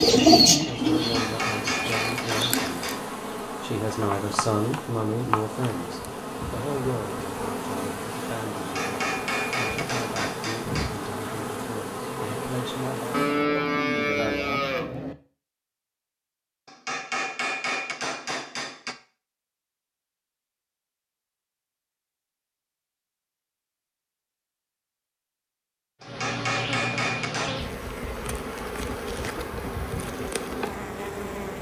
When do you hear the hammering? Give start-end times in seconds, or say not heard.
0.9-3.0, 8.6-11.1, 16.6-18.9, 26.0-27.6.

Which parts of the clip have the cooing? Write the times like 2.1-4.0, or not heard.
0.0-2.6.